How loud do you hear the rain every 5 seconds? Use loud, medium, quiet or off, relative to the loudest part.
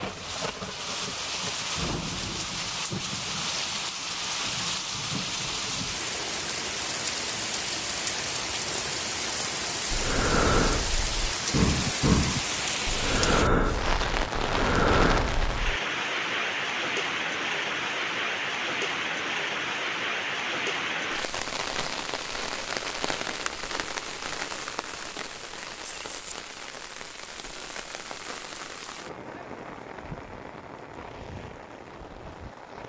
loud, loud, loud, loud, loud, medium, quiet.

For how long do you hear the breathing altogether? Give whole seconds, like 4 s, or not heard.
6 s.